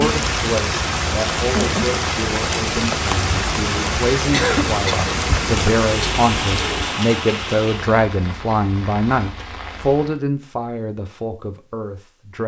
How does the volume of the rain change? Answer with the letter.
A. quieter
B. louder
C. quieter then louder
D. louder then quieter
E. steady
A.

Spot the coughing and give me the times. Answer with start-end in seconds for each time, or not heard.
4.3-5.0.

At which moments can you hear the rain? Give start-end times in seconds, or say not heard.
0.0-10.2.